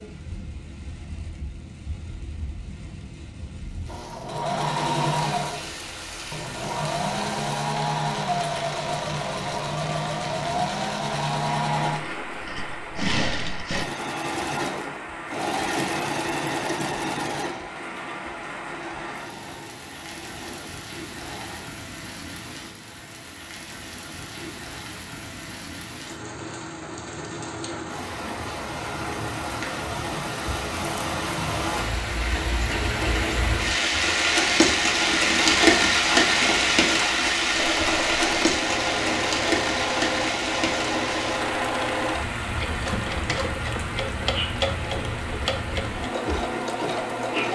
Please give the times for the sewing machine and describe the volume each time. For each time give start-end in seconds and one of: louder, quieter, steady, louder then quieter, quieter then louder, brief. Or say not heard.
3.7-21.6 quieter
37.5-47.5 steady.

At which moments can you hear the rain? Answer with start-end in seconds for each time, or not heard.
0.0-47.5.